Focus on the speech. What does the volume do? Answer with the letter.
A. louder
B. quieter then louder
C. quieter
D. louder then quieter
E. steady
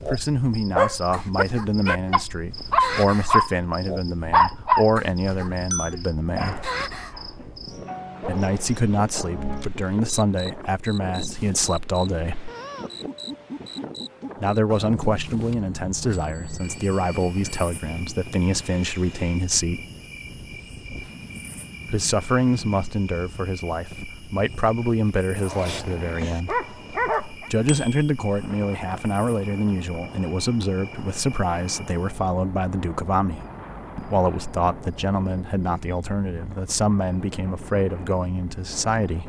E.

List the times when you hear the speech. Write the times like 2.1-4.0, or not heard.
0.1-6.7, 8.2-12.5, 14.4-19.8, 21.9-26.6, 27.4-39.2.